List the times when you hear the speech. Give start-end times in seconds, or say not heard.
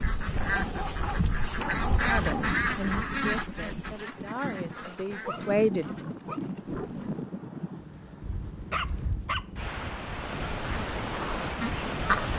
2.0-5.9.